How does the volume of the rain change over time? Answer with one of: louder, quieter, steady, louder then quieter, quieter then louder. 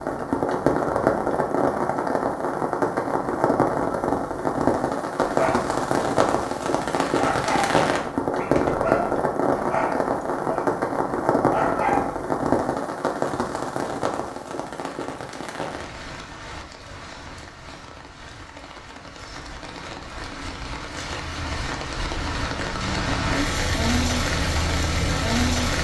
quieter then louder.